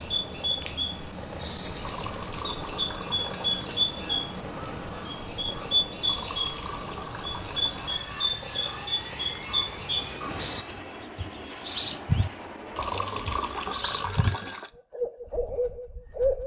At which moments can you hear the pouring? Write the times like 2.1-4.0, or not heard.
1.8-3.8, 6.0-8.0, 12.8-14.7.